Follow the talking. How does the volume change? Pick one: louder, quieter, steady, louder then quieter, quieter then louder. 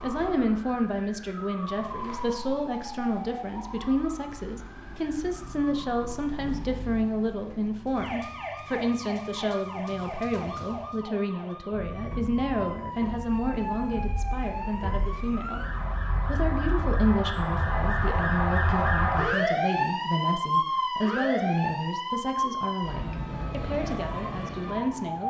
steady.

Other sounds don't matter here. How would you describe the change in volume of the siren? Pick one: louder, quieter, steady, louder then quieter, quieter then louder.
louder.